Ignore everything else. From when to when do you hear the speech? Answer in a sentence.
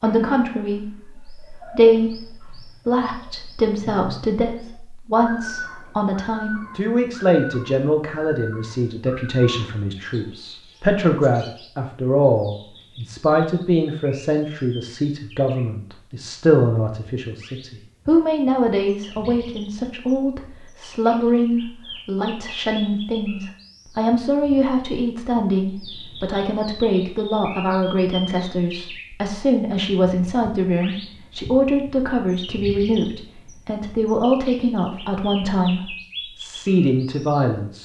You can hear the speech from 0.0 to 37.8 s.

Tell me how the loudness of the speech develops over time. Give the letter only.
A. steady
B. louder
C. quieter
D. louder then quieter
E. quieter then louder
A.